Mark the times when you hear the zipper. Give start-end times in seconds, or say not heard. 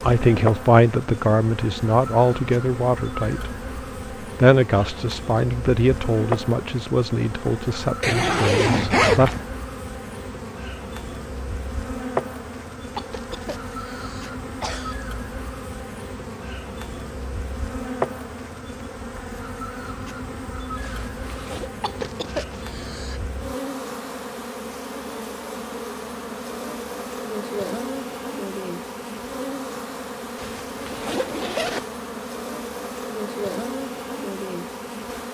8.0-9.4, 20.8-21.8, 30.4-31.9.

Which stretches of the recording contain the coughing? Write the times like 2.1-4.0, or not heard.
12.9-14.9, 21.8-23.2.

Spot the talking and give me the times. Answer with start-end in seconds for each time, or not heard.
0.0-3.6, 4.2-9.3.